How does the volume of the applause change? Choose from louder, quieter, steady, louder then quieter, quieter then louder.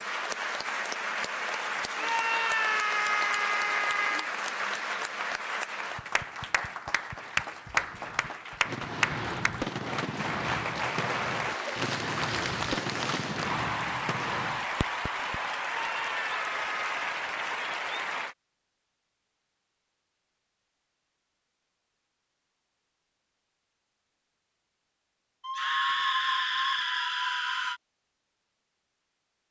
steady.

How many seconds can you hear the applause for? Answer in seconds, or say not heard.
18 s.